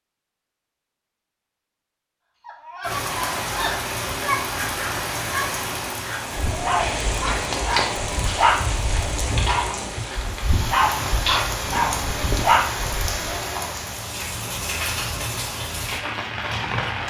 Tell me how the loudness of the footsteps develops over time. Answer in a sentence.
The volume of the footsteps goes down, then up.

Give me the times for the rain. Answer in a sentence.
The rain can be heard from 2.8 to 17.0 s.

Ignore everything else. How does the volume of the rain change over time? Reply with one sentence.
The volume of the rain stays about the same.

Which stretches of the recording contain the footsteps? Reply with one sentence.
You can hear the footsteps from 6.8 to 12.4 s.